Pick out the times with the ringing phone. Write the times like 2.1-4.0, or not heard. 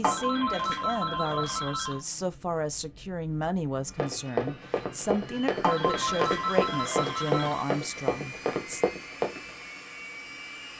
0.0-2.0, 5.6-7.6.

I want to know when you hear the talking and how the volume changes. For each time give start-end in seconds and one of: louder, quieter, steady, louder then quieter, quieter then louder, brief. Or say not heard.
0.0-8.8 steady.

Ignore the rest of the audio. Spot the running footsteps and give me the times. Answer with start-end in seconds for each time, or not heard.
4.0-9.6.